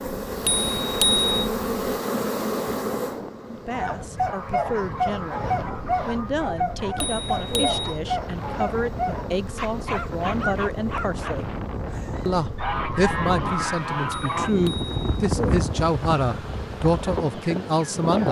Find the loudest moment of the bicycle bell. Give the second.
1 s.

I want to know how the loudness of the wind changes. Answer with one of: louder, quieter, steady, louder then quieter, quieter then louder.
louder.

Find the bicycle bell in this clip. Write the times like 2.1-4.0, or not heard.
0.5-1.5, 7.0-8.0, 14.1-15.3.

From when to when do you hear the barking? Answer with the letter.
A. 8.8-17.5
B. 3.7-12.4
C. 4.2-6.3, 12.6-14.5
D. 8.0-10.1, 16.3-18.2
B.